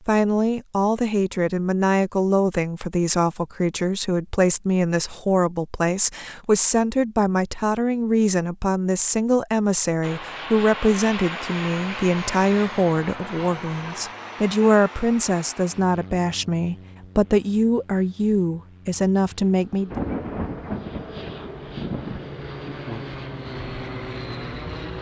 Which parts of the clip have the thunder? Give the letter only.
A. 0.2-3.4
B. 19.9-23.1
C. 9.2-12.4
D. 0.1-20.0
B.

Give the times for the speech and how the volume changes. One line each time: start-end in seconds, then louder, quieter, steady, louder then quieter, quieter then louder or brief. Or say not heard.
0.1-20.0 steady.